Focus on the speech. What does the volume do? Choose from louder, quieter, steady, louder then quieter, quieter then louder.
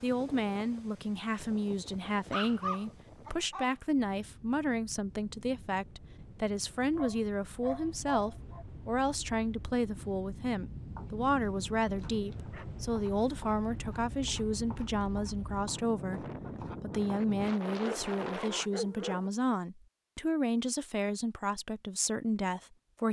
steady.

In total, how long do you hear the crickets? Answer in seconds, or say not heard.
not heard.